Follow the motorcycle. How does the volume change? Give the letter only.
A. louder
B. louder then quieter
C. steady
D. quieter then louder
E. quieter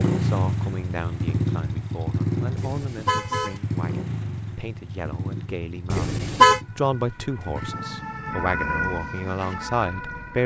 E.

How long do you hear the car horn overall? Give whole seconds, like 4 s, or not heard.
2 s.